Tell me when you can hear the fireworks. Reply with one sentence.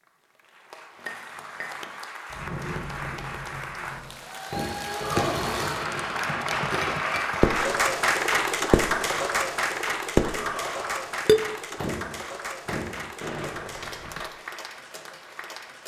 The fireworks can be heard from 2.3 to 8.1 s, from 8.7 to 9.4 s, from 10.2 to 10.8 s and from 11.8 to 14.3 s.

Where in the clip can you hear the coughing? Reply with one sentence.
You can't hear the coughing here.